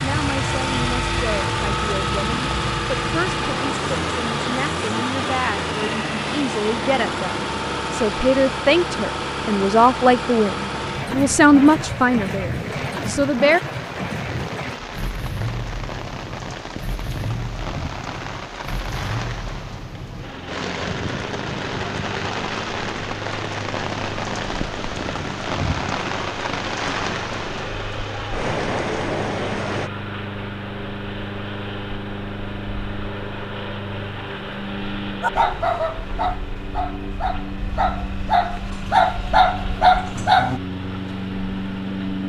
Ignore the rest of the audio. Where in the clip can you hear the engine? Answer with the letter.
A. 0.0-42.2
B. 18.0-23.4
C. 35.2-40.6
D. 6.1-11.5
A.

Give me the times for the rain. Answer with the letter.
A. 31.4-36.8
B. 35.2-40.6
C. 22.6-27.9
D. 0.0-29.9
D.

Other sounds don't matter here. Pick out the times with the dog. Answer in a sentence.
The dog can be heard from 35.2 to 40.6 s.